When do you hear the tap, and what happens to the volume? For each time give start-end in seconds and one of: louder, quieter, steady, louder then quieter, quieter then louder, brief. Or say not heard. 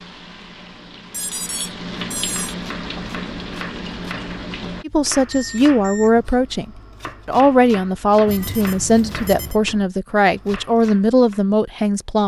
0.0-4.8 louder.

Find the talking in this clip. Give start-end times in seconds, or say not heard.
4.8-12.2.